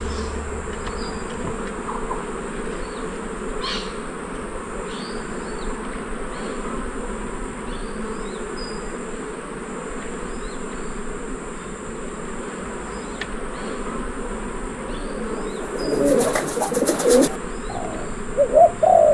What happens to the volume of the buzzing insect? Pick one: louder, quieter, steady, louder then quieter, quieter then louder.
steady.